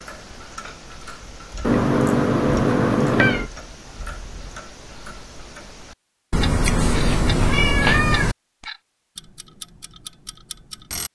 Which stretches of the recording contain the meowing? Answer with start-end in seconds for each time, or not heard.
1.6-3.5, 6.3-8.3.